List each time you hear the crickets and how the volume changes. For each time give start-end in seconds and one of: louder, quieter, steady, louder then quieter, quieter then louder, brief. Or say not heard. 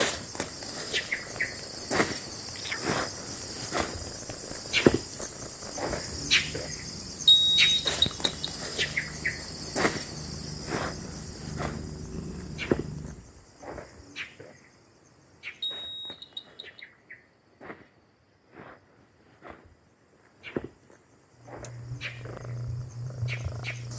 0.0-23.9 quieter then louder.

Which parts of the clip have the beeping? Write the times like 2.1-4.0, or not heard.
7.2-8.5, 15.6-16.9.